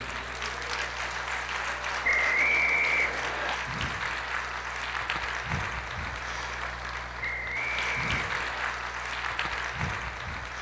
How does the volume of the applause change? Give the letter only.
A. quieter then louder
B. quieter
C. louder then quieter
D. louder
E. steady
E.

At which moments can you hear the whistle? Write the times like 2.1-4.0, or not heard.
2.0-3.5, 7.2-8.8.